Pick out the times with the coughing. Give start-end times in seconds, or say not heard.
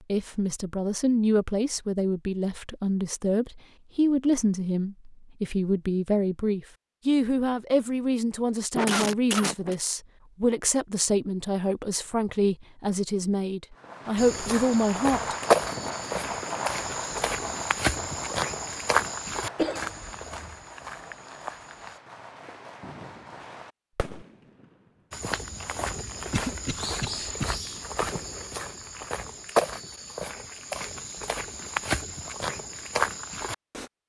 8.8-9.8, 19.6-20.6, 26.3-27.4.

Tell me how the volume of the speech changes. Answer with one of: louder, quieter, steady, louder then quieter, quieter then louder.
steady.